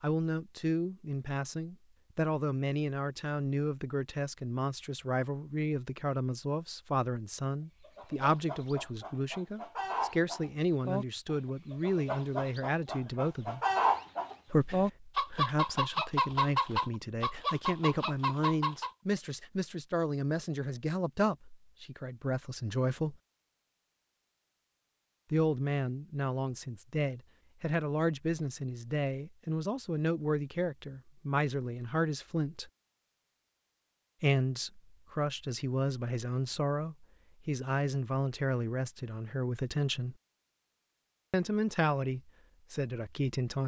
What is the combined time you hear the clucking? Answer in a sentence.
The clucking can be heard for 11 seconds in total.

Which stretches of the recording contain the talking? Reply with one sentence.
The talking can be heard from 0.0 to 13.6 s, from 14.5 to 23.1 s, from 25.3 to 32.7 s, from 34.2 to 40.1 s and from 41.3 to 43.6 s.